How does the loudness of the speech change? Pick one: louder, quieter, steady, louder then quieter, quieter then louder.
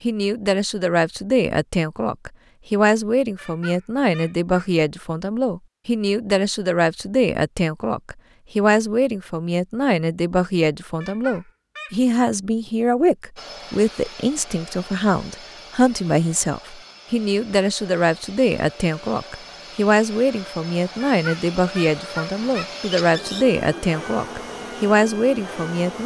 steady.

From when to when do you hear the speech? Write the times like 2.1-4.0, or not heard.
0.0-26.0.